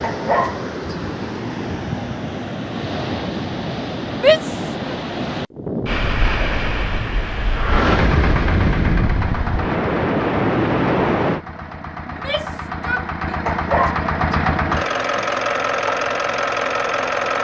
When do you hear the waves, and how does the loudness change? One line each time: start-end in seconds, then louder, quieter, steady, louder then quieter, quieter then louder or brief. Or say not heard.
0.0-11.4 louder.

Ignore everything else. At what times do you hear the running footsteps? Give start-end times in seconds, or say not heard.
not heard.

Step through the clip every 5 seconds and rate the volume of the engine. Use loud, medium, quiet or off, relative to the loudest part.
off, loud, loud, loud.